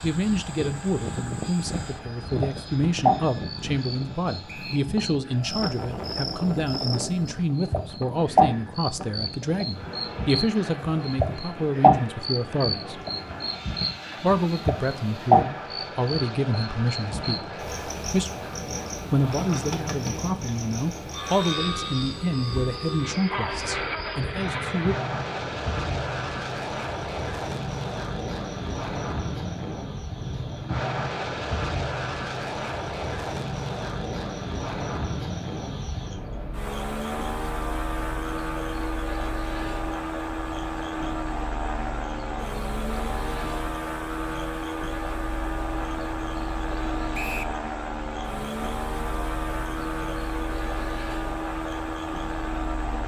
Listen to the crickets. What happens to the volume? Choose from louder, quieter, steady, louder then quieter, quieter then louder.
quieter.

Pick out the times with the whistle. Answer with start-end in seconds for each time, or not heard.
4.5-4.9, 47.1-47.5.